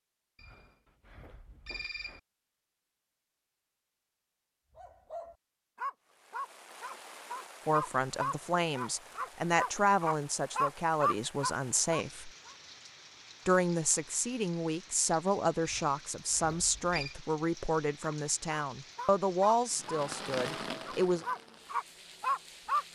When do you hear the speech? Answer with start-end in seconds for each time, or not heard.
7.7-12.3, 13.4-21.2.